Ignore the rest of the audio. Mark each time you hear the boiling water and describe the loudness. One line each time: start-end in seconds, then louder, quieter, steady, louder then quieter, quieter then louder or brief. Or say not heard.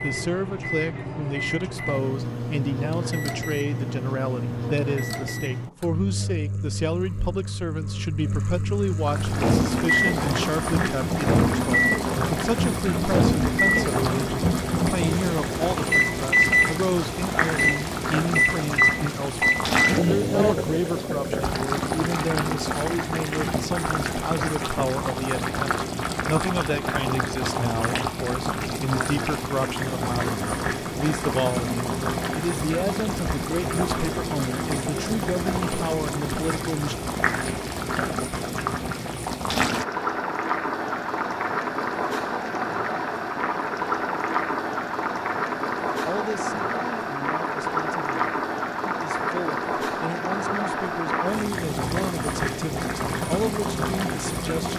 9.0-54.7 steady.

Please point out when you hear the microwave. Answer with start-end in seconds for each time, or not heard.
0.0-21.1.